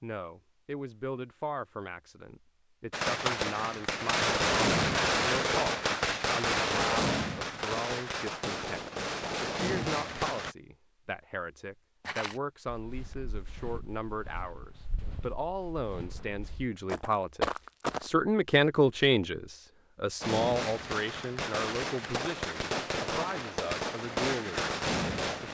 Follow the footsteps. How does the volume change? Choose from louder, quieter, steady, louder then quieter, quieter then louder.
louder.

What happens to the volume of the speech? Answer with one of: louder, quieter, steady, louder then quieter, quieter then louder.
louder then quieter.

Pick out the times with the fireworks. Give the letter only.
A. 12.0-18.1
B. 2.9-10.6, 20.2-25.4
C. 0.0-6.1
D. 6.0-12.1
B.